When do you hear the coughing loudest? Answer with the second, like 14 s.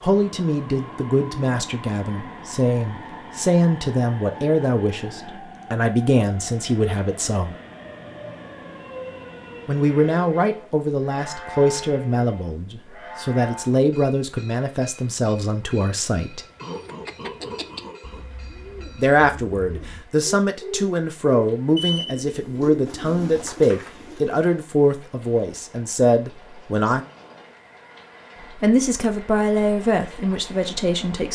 17 s.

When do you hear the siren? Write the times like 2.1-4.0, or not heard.
not heard.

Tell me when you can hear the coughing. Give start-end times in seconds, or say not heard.
16.6-18.2.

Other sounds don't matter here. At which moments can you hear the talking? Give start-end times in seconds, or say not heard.
0.0-7.5, 9.7-16.4, 18.9-27.1, 28.6-31.3.